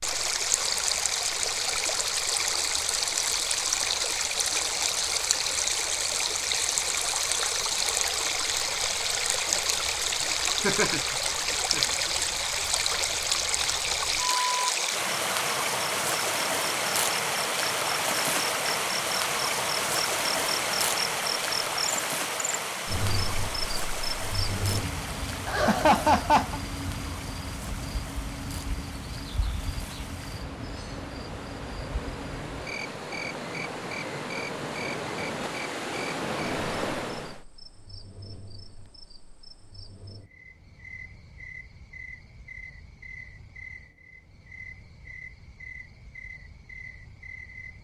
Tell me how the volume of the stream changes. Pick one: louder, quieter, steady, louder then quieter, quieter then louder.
quieter.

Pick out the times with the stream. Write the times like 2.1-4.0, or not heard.
0.0-37.5.